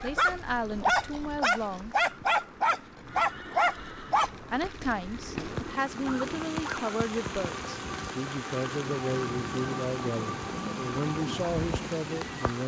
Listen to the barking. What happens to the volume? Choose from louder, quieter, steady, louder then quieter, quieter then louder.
quieter.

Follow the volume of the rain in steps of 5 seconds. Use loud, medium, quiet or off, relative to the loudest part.
quiet, loud, loud.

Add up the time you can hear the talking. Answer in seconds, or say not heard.
10 s.